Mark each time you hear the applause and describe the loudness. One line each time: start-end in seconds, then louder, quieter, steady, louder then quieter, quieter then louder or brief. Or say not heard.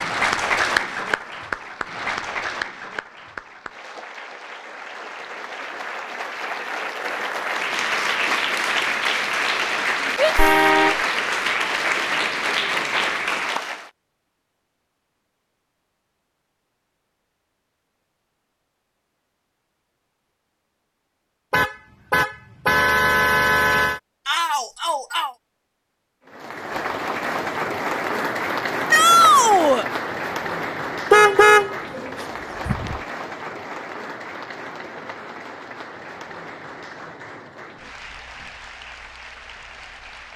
0.0-13.9 quieter then louder
26.2-40.3 quieter.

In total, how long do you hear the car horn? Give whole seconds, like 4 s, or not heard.
5 s.